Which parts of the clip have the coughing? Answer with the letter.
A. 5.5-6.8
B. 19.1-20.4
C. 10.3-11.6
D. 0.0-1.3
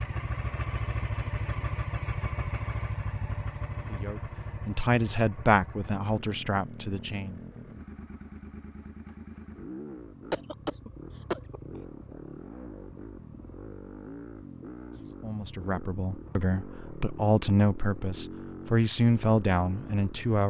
C.